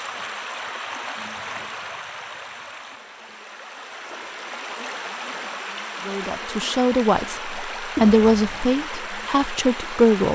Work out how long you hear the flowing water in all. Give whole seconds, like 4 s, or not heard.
10 s.